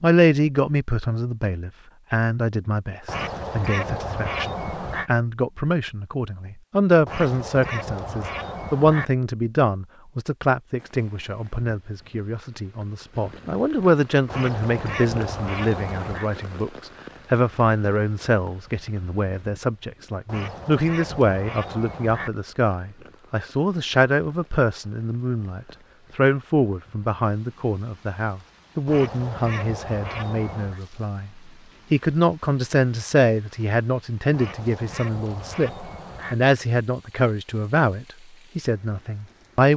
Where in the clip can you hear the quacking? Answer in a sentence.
You can hear the quacking from 3.0 to 5.1 s, from 7.0 to 9.1 s, from 14.3 to 16.3 s, from 20.2 to 22.3 s, from 28.9 to 30.8 s and from 34.3 to 36.4 s.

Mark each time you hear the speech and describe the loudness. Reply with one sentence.
The speech can be heard from 0.0 to 31.3 s, at a steady volume; and from 31.9 to 39.7 s, getting quieter.